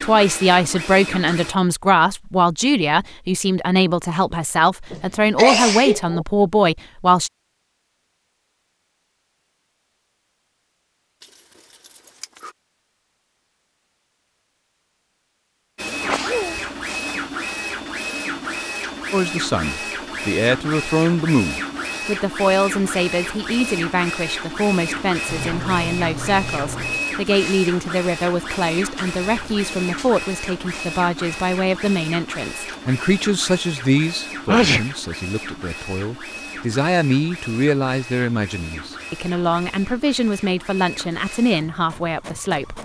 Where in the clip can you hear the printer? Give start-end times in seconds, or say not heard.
0.0-1.6, 15.8-42.8.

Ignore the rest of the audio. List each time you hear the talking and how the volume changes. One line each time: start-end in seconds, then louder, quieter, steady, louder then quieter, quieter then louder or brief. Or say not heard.
0.0-7.3 steady
19.1-42.8 steady.